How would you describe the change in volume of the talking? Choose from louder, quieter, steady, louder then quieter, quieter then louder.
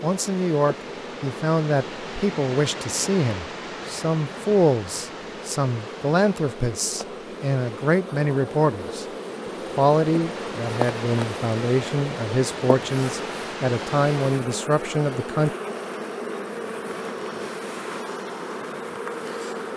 steady.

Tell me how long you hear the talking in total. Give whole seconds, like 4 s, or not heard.
15 s.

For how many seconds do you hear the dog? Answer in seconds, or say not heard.
not heard.